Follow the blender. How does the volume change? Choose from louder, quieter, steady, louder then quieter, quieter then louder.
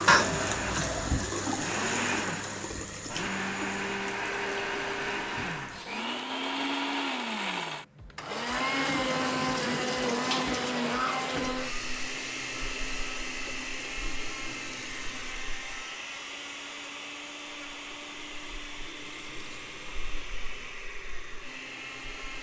quieter.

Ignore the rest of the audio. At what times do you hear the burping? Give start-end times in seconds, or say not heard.
0.1-1.1.